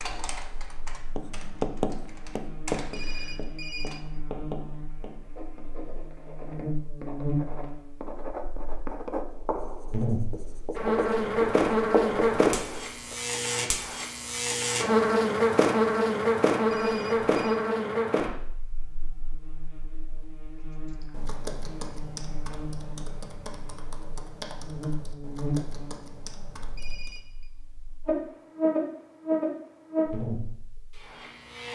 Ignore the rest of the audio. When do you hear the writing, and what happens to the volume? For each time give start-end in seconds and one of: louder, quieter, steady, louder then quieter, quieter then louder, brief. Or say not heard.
1.1-13.2 quieter then louder.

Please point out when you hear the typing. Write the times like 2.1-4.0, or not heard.
0.0-4.0, 20.9-27.2.